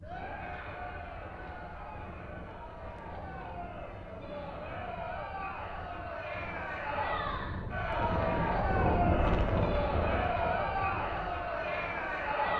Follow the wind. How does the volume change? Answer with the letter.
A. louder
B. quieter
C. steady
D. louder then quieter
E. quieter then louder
D.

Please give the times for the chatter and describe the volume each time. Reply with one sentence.
The chatter can be heard from 0.0 to 12.5 s, getting louder.